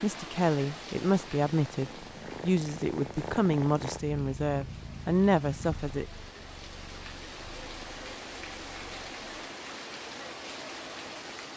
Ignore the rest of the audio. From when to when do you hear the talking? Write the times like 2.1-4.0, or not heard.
0.0-6.0.